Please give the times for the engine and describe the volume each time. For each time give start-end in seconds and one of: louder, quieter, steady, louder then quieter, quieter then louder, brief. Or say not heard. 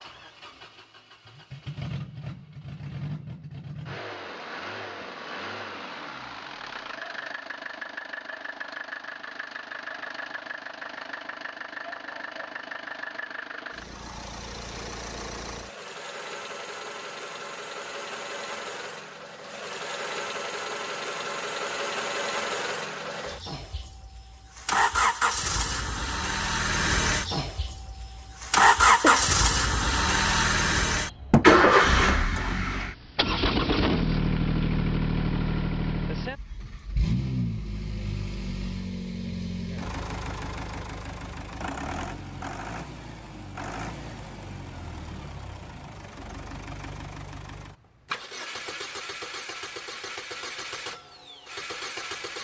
0.0-52.3 louder then quieter.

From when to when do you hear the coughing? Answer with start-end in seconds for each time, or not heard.
29.0-29.6.